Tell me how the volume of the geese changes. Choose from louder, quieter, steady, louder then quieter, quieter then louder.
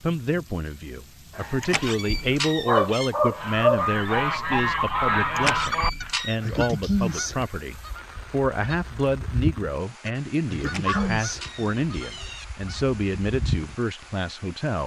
quieter.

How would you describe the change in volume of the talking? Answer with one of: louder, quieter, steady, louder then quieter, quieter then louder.
steady.